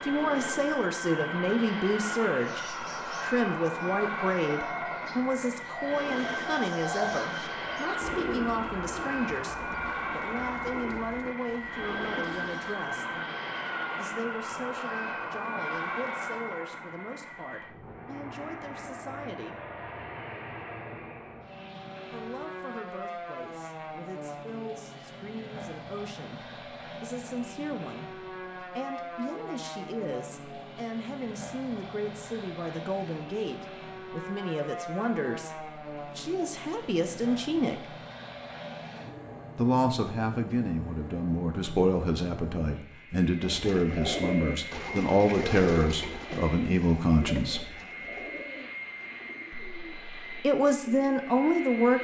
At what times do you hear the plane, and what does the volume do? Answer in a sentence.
The plane can be heard from 0.0 to 51.9 s, getting quieter.